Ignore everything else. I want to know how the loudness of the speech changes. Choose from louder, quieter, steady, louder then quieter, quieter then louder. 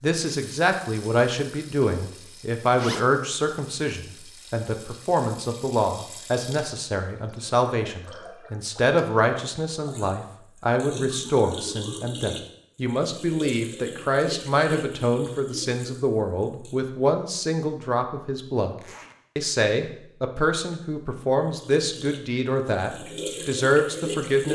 steady.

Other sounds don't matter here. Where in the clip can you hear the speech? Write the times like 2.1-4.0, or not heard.
0.0-18.8, 19.4-24.5.